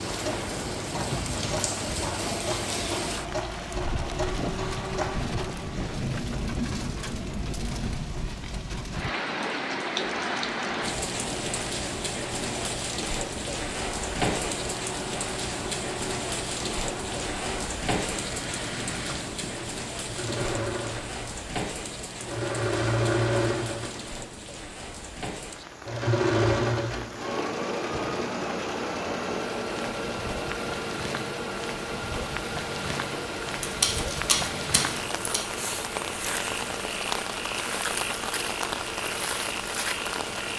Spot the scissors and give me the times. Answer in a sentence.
The scissors can be heard from 33.6 to 35.4 s.